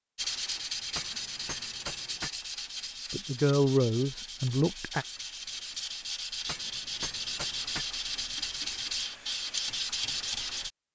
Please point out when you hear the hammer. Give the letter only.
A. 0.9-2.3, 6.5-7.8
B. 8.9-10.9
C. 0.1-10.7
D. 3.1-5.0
A.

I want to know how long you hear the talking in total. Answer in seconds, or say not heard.
2 s.